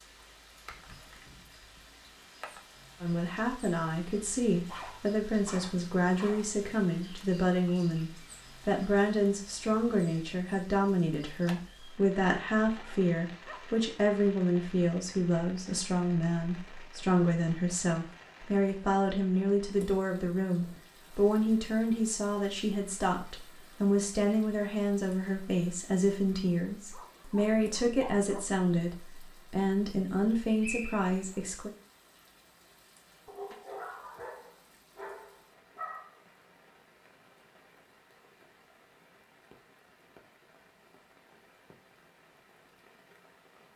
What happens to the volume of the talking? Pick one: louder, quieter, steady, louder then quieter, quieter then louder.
steady.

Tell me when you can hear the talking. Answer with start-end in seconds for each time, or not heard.
3.0-31.7.